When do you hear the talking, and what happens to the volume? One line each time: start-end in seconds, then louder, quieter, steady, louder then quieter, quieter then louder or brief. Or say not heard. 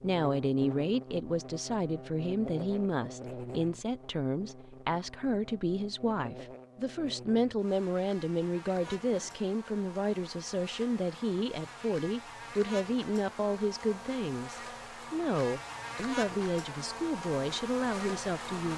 0.0-18.7 steady.